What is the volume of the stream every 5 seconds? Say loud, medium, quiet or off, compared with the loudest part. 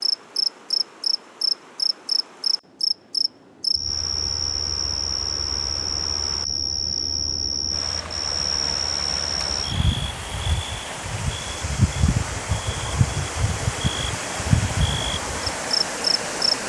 quiet, medium, loud, loud.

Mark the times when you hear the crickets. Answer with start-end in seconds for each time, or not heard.
0.0-16.6.